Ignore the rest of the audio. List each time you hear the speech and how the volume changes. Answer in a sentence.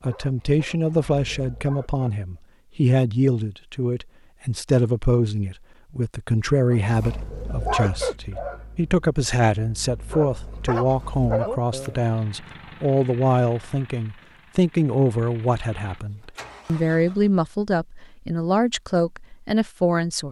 The speech can be heard from 0.0 to 20.2 s, at a steady volume.